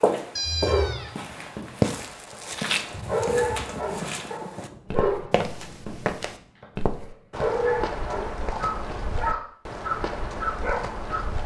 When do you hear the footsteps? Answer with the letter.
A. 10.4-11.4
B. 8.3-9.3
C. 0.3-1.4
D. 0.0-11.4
D.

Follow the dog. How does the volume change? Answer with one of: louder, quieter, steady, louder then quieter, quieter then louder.
louder.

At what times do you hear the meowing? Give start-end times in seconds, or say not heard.
0.3-1.4.